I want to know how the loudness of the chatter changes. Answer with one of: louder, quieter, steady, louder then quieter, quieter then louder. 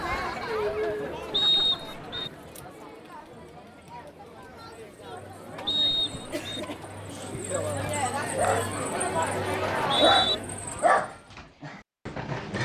quieter then louder.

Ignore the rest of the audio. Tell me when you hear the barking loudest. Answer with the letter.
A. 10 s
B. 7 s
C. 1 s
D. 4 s
A.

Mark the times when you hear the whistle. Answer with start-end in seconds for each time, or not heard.
1.3-2.3, 5.7-6.6, 9.7-10.3.